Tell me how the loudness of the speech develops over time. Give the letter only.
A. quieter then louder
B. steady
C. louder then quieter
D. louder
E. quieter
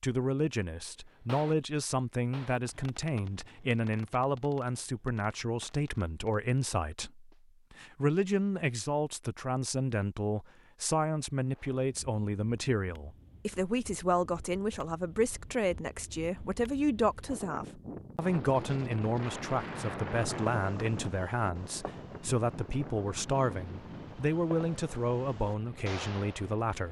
B.